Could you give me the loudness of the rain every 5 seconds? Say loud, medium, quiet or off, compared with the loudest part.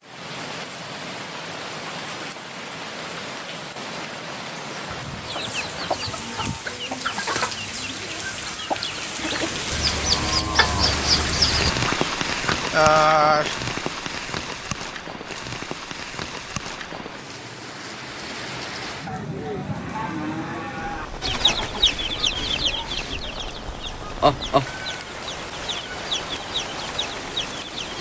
medium, medium, loud, medium, medium, medium.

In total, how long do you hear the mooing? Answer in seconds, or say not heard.
6 s.